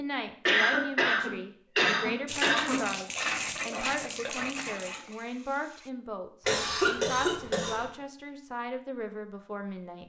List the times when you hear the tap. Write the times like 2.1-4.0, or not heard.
2.2-5.9.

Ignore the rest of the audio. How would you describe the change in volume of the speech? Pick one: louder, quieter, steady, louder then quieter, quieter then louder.
steady.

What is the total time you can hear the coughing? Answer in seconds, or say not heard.
4 s.